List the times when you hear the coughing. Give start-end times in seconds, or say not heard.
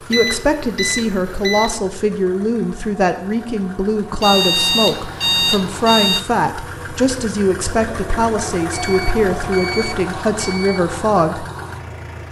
not heard.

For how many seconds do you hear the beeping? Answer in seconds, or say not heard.
6 s.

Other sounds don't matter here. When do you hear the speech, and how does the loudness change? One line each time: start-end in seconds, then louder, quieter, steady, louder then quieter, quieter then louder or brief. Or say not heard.
0.0-11.4 steady.